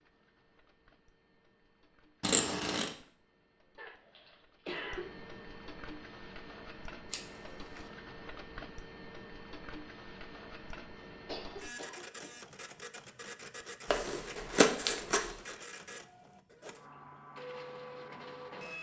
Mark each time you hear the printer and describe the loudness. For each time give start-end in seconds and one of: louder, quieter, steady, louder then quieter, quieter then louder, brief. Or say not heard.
0.0-18.7 louder.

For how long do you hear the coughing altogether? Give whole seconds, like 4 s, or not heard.
2 s.